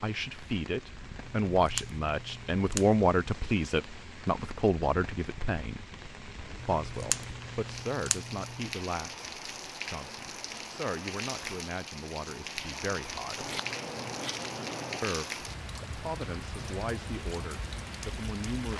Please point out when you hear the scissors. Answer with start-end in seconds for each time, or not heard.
1.4-3.0, 6.6-8.7, 13.3-15.1.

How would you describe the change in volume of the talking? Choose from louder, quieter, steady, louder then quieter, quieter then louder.
quieter.